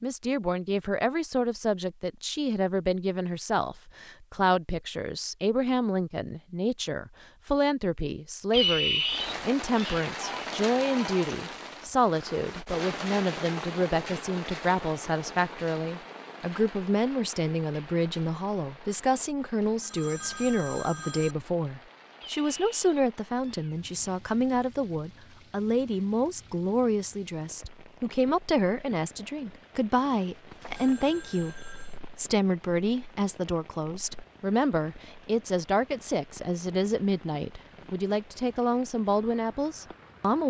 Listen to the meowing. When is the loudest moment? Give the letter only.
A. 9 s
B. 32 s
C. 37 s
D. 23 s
A.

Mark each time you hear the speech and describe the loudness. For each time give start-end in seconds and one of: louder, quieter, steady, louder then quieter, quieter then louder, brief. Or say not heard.
0.0-40.4 steady.